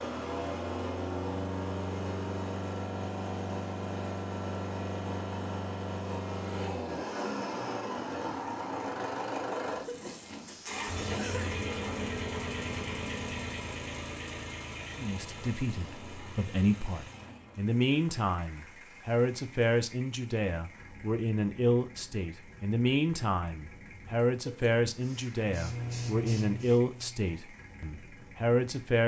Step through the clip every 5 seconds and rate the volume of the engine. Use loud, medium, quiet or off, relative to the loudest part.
loud, loud, loud, quiet, quiet, quiet.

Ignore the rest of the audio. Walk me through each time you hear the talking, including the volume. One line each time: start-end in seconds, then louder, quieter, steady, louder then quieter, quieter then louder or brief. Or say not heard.
14.9-29.0 steady.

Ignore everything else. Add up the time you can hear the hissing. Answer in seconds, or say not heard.
2 s.